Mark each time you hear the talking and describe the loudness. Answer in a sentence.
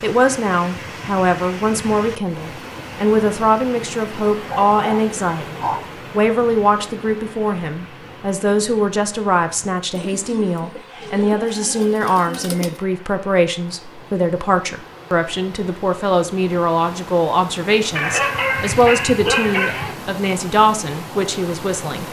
The talking can be heard from 0.0 to 22.0 s, at a steady volume.